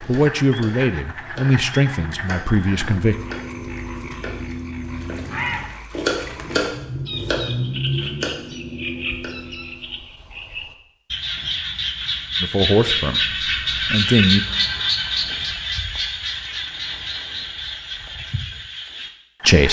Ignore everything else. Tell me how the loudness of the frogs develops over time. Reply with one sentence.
The loudness of the frogs goes up, then down.